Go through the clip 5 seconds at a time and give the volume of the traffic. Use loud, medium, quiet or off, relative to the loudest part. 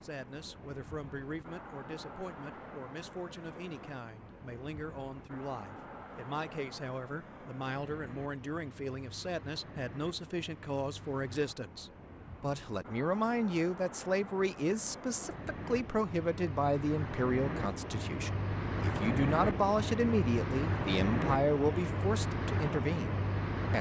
quiet, quiet, quiet, loud, loud.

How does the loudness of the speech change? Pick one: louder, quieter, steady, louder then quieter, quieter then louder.
louder.